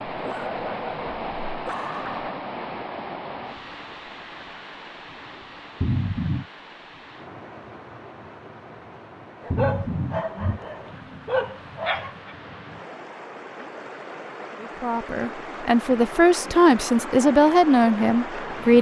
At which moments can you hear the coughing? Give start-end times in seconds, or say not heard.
5.8-6.5, 9.5-10.6.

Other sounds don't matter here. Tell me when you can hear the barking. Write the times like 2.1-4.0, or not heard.
0.1-2.4, 9.4-12.3.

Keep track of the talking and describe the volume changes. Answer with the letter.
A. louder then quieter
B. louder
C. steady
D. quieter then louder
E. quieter
B.